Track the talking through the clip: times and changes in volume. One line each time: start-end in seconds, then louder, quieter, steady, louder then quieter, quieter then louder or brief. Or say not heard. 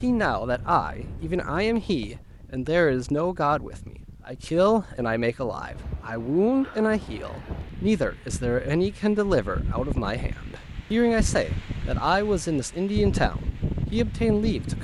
0.0-14.7 steady.